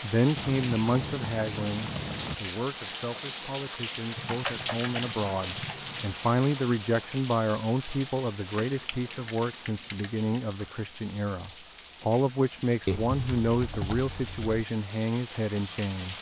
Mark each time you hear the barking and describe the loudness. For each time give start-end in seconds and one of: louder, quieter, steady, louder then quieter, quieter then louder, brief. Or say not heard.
not heard.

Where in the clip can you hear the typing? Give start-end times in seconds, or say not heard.
0.3-2.4, 4.2-6.2, 8.5-10.6, 12.8-14.7.